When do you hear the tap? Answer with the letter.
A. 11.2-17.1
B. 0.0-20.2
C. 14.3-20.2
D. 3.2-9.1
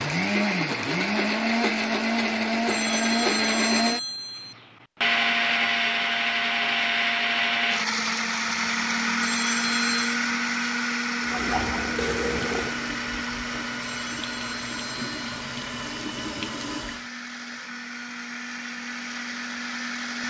A.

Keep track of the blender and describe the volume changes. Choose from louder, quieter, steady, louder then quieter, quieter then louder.
quieter.